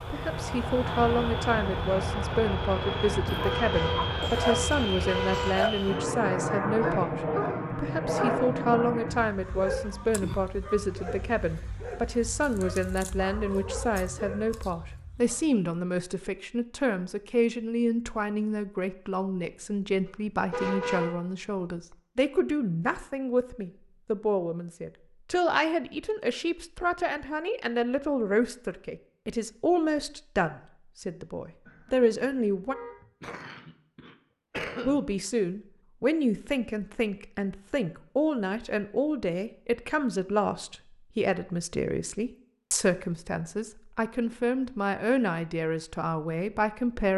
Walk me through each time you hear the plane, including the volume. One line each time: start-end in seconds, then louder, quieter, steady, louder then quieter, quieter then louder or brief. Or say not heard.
0.0-9.3 steady.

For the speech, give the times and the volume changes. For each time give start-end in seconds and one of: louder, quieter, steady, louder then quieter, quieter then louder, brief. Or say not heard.
0.1-32.8 steady
34.8-47.1 steady.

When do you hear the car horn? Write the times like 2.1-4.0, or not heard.
3.4-5.5, 20.1-21.2, 31.6-33.0.